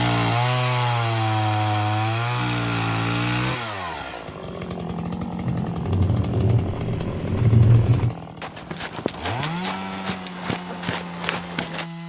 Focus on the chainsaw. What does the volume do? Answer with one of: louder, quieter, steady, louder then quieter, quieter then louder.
quieter.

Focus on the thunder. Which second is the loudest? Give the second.
8 s.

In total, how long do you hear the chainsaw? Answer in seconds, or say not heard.
12 s.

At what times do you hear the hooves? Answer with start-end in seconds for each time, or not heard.
6.6-11.8.